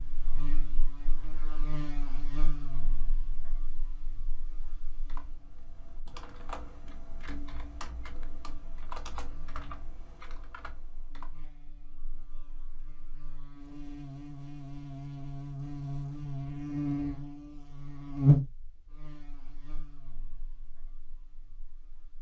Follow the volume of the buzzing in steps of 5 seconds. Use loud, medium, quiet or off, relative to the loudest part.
quiet, quiet, quiet, loud, quiet.